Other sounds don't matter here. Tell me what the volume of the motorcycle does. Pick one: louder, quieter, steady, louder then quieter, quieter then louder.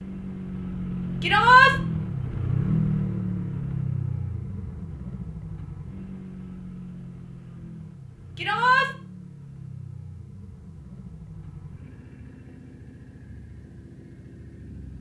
quieter.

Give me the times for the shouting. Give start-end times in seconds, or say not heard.
1.2-1.8, 8.3-8.9.